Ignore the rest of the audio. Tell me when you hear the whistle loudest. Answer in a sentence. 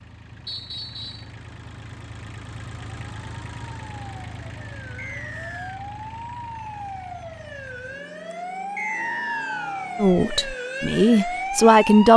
The loudest moment of the whistle is at 9 seconds.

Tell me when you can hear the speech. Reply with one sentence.
You can hear the speech from 10.0 to 12.1 s.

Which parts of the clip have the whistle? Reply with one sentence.
You can hear the whistle from 0.5 to 1.3 s, from 5.0 to 5.8 s and from 8.8 to 9.9 s.